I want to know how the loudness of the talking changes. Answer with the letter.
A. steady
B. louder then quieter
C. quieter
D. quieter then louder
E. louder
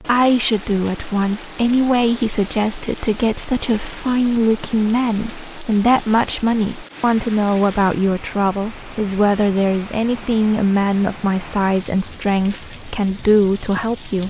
A.